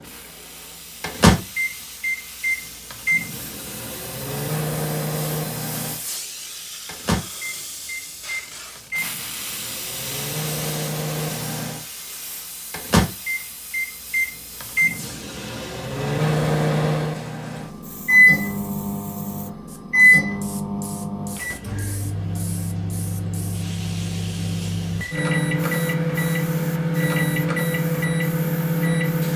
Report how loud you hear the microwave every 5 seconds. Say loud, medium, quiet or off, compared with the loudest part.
loud, medium, loud, loud, loud, loud.